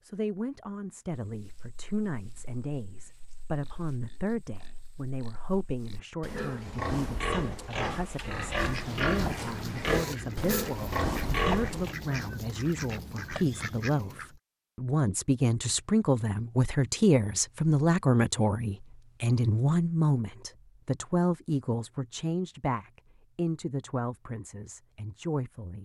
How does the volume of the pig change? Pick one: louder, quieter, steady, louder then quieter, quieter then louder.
louder.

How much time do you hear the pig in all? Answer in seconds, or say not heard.
11 s.